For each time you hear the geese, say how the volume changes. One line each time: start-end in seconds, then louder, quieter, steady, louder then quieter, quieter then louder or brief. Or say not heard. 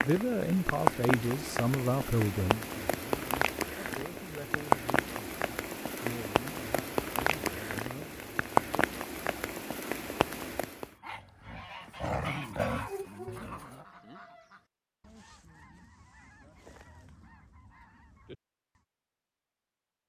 11.4-18.9 quieter.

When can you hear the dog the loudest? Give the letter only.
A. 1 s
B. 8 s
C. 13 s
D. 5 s
C.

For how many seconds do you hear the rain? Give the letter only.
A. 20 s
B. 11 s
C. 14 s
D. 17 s
B.